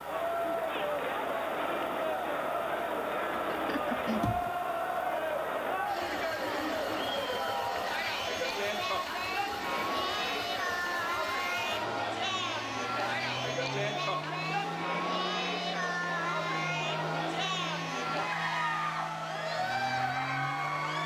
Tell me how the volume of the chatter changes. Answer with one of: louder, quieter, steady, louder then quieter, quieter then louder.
steady.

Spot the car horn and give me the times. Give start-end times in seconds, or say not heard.
3.3-4.5.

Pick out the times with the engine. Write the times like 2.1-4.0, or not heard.
0.0-21.0.